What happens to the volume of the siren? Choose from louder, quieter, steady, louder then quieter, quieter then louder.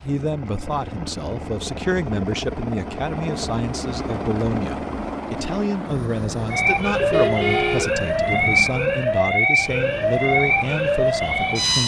steady.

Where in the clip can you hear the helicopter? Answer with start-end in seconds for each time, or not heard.
0.0-11.8.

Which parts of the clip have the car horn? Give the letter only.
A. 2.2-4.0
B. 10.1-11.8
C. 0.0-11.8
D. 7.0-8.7
D.